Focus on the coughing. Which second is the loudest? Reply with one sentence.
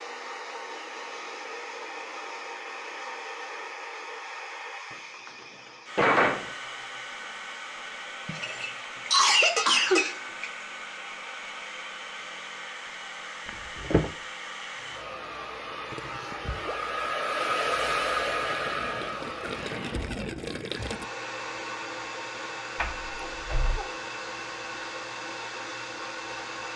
The loudest moment of the coughing is at 9 seconds.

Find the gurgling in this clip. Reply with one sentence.
You can hear the gurgling from 15.9 to 21.1 s.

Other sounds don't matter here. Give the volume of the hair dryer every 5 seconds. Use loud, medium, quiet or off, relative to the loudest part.
medium, medium, medium, loud, medium, medium.